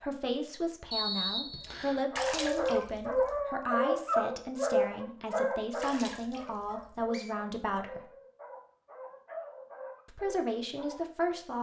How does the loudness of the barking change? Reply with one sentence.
The loudness of the barking goes down.